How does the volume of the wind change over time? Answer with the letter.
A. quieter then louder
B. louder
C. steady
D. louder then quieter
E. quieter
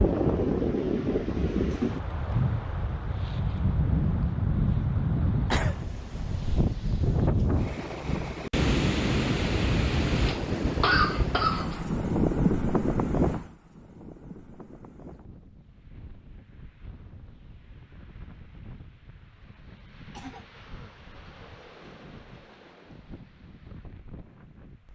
E.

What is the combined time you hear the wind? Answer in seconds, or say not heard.
25 s.